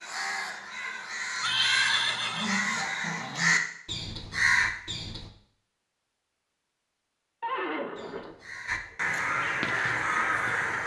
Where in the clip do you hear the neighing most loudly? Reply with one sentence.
The loudest moment of the neighing is at 2 seconds.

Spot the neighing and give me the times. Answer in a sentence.
You can hear the neighing from 1.4 to 2.6 s and from 7.4 to 9.1 s.